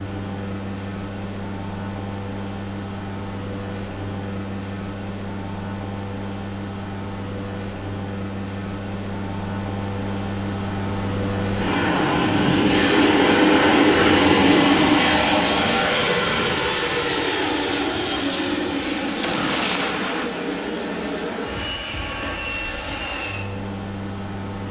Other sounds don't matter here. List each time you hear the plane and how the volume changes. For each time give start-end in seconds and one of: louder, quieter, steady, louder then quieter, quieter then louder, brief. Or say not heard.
0.0-24.6 louder then quieter.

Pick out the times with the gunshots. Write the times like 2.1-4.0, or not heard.
19.2-20.2.